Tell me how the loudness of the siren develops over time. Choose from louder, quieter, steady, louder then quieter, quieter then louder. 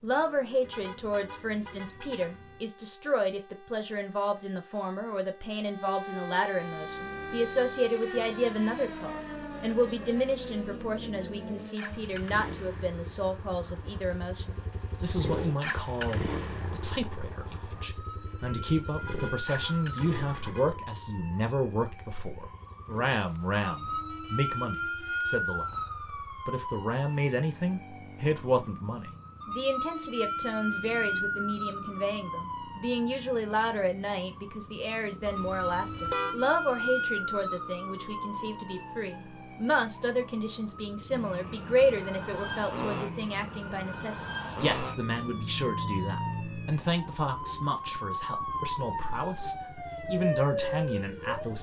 louder.